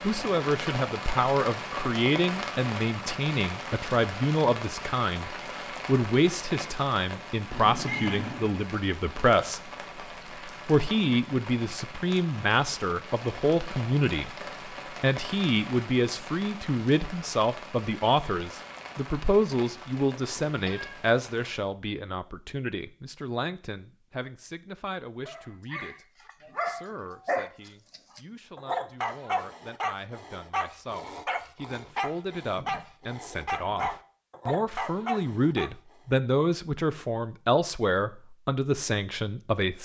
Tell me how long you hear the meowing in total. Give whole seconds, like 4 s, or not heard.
2 s.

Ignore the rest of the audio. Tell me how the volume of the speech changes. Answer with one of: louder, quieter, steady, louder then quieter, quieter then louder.
quieter then louder.